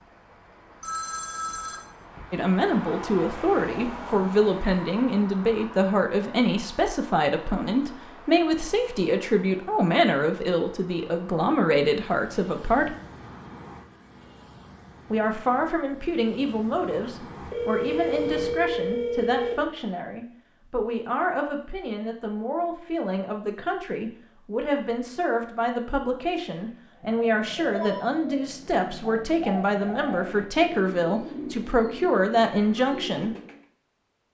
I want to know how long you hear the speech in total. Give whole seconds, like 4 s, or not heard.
29 s.